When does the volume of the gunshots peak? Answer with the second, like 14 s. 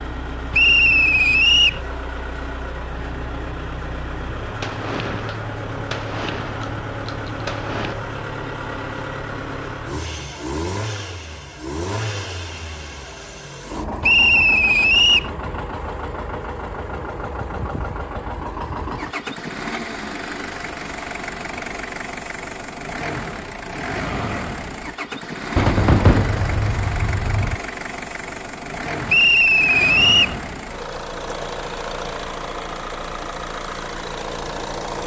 26 s.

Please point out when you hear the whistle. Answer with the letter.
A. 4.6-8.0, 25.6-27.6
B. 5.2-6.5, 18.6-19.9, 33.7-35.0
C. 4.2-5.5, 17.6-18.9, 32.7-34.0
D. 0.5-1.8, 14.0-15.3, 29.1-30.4
D.